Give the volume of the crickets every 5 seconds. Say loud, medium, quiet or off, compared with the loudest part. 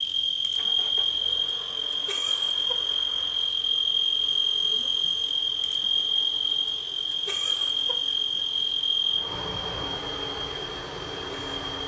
loud, loud, medium.